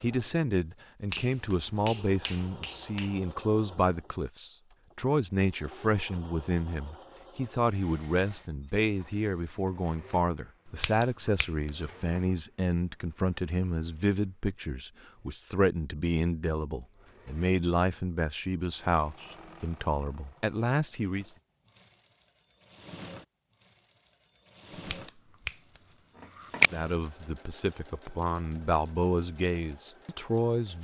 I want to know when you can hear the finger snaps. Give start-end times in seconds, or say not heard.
1.1-3.1, 10.7-12.2, 24.9-26.7.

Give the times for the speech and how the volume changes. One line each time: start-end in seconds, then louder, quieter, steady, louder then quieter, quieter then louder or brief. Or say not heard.
0.0-21.2 steady
26.7-30.7 louder then quieter.